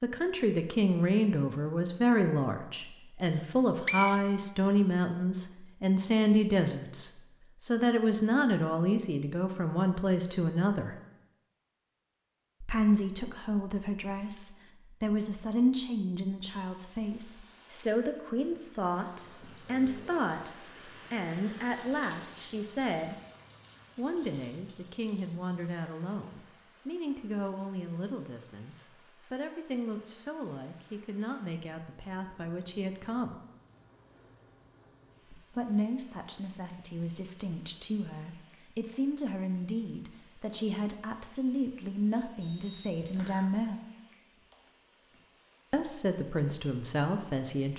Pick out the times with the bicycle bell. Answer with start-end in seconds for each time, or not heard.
not heard.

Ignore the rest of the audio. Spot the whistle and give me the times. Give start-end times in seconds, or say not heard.
3.4-4.5, 42.4-43.5.